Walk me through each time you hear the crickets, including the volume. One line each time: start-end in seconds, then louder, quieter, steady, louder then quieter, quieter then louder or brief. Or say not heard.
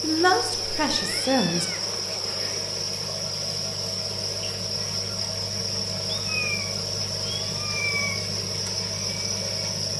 0.0-9.9 steady.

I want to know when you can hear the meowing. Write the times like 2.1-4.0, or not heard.
0.9-2.7, 6.1-8.2.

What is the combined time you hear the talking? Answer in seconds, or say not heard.
2 s.